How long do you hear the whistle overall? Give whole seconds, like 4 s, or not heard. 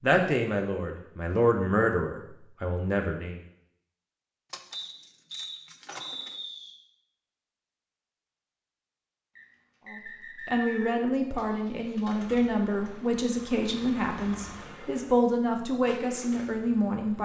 4 s.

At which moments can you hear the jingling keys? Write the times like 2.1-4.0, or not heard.
4.5-6.4.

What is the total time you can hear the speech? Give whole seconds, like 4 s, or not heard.
11 s.